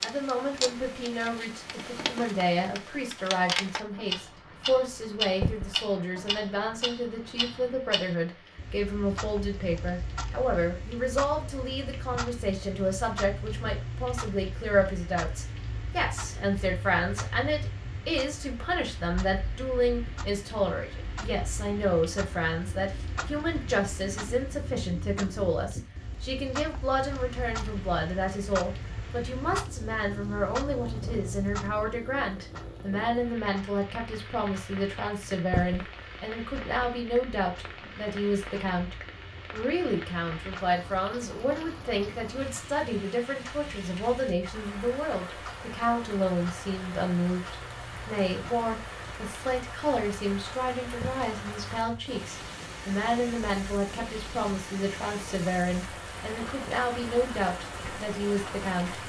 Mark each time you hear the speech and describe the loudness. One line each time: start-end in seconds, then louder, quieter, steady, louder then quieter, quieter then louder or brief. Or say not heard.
0.0-59.0 steady.